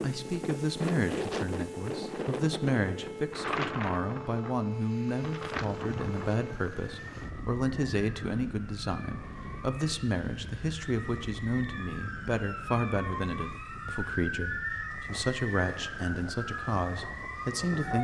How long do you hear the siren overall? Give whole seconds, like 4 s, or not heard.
18 s.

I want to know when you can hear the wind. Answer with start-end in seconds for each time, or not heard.
0.0-17.9.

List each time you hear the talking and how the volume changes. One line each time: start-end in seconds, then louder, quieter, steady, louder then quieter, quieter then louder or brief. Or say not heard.
0.0-17.9 steady.